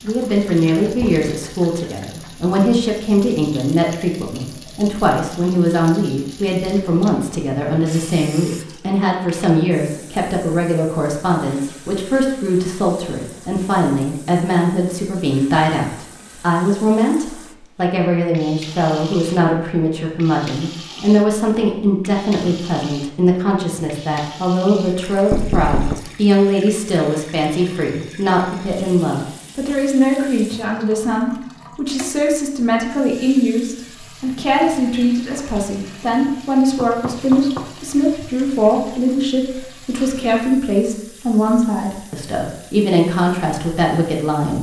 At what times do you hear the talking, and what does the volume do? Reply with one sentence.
The talking can be heard from 0.0 to 44.5 s, at a steady volume.